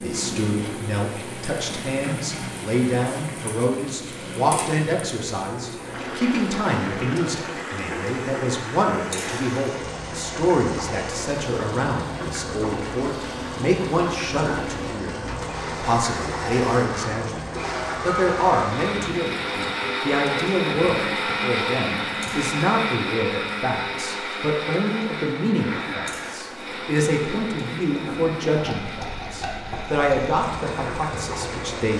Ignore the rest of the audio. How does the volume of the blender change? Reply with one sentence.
The volume of the blender goes up, then down.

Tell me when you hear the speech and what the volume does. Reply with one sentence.
You can hear the speech from 0.0 to 31.9 s, at a steady volume.